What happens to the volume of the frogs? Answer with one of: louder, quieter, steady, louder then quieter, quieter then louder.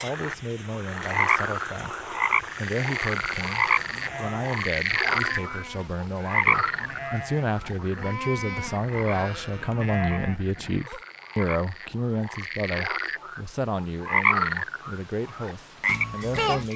quieter then louder.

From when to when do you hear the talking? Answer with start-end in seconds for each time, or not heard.
0.0-16.7.